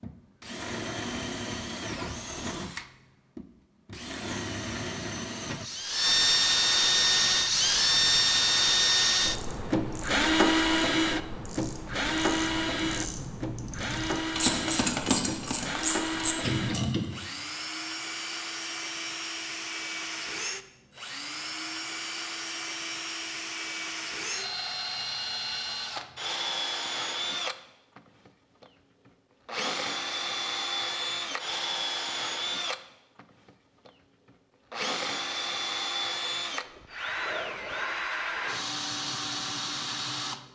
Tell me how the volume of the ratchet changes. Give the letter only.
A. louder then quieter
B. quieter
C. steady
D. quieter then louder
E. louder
E.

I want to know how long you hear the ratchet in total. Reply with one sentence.
The ratchet can be heard for 10 seconds in total.